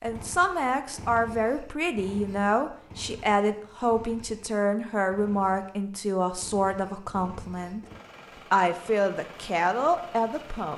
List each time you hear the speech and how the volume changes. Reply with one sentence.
The speech can be heard from 0.0 to 7.8 s, at a steady volume; and briefly from 8.5 to 10.7 s.